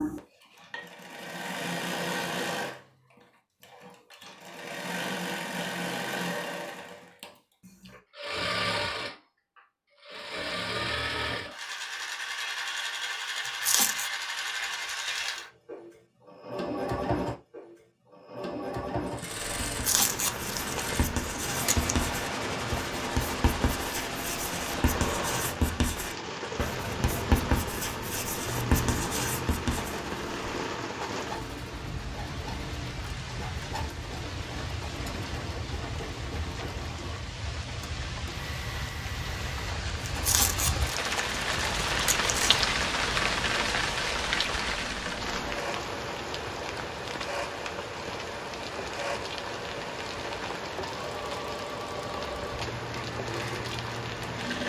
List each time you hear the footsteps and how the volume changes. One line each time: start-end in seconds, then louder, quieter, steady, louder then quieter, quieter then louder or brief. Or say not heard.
not heard.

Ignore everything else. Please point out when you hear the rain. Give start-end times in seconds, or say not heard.
19.7-54.6.